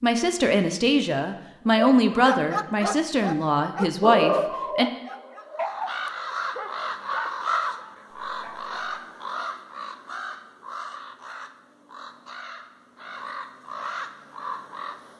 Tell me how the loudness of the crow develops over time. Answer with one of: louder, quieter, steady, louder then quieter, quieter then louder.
quieter then louder.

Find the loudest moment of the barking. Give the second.
4 s.